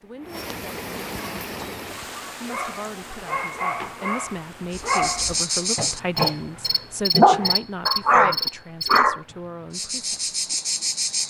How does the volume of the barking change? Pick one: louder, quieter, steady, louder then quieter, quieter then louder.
louder.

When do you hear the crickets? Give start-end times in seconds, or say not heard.
4.7-11.2.